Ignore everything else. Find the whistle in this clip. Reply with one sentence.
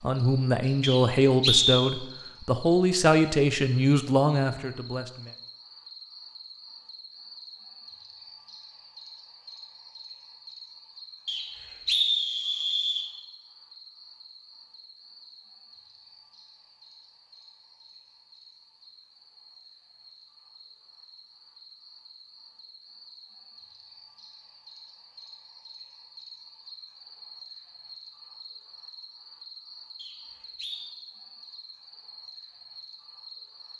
You can hear the whistle from 0.8 to 1.9 s, from 11.2 to 13.1 s and from 29.9 to 30.9 s.